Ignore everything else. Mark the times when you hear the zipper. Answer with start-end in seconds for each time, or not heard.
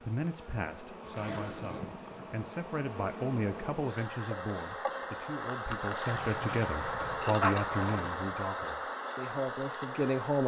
1.0-1.9, 6.1-7.3.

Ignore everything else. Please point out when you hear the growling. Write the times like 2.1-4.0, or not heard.
7.4-8.3.